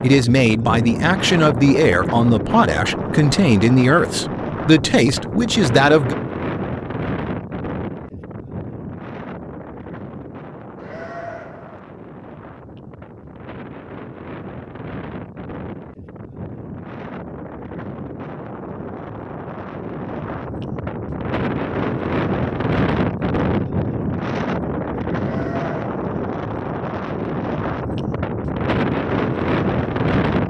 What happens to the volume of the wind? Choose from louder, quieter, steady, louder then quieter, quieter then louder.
quieter then louder.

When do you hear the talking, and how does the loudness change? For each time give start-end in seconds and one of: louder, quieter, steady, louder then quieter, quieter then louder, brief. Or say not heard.
0.0-6.2 steady.